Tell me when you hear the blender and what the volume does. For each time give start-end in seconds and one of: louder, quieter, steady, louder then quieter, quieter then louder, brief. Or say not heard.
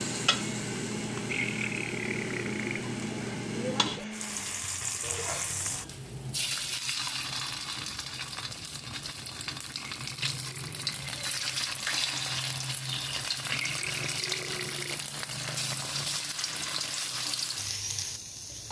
0.0-4.6 steady.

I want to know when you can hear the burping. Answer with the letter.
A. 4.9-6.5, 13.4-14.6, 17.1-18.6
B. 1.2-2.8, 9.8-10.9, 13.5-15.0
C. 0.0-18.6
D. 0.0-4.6
B.